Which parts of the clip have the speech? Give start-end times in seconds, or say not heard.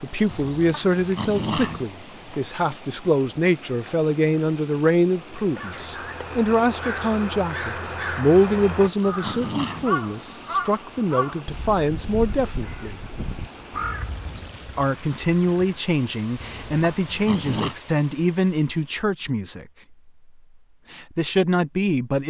0.0-13.0, 14.3-19.6, 20.9-22.2.